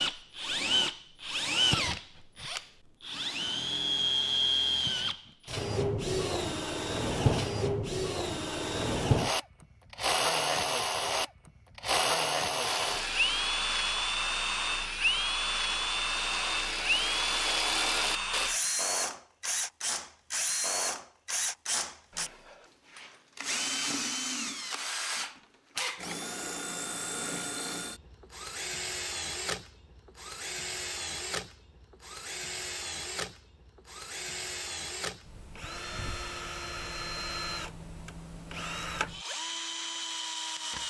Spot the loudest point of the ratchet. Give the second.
18 s.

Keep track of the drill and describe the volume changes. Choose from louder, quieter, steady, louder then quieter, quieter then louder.
quieter.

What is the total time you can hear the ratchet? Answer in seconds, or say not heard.
6 s.